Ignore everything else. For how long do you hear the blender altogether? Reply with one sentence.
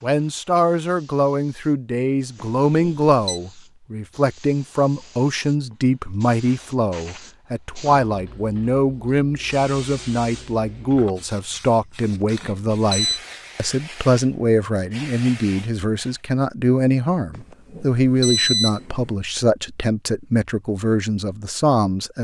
The blender can't be heard in this clip.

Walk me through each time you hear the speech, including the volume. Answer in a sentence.
The speech can be heard from 0.0 to 22.1 s, at a steady volume.